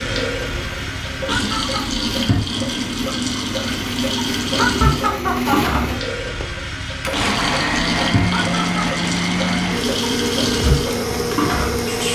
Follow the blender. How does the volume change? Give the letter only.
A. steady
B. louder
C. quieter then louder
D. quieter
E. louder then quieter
B.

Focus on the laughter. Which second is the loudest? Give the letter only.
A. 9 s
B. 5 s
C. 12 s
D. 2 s
B.